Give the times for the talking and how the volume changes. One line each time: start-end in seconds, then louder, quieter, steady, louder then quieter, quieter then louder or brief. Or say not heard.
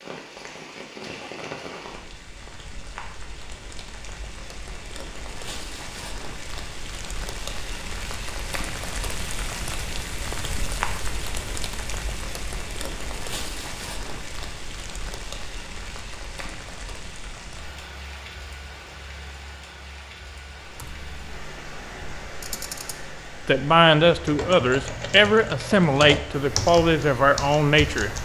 23.4-28.1 steady.